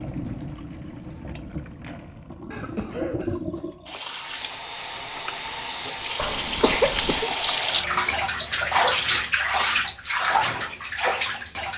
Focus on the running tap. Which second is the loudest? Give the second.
9 s.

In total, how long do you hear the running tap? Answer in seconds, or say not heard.
12 s.